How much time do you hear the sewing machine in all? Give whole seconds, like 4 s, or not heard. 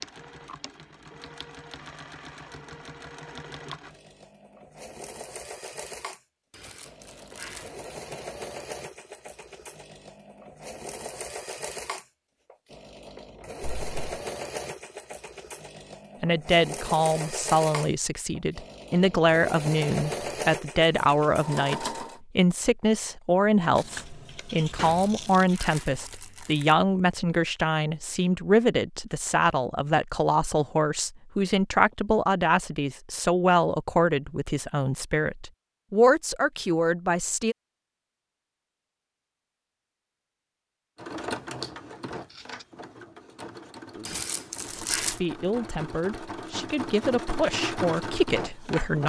30 s.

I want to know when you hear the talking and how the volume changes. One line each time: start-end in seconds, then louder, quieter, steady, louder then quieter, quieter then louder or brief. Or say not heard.
16.2-37.5 steady
43.9-49.0 louder.